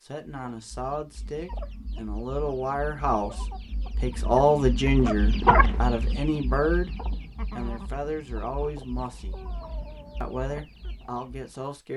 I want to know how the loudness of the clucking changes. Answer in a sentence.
The volume of the clucking goes up, then down.